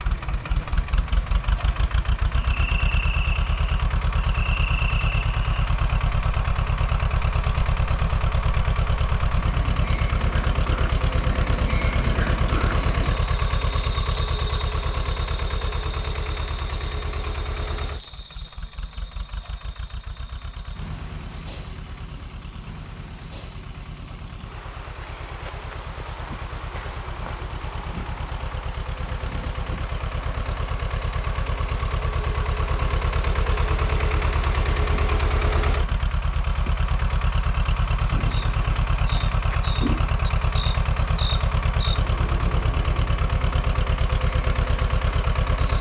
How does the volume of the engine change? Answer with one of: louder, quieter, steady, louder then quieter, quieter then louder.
quieter then louder.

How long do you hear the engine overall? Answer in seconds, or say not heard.
46 s.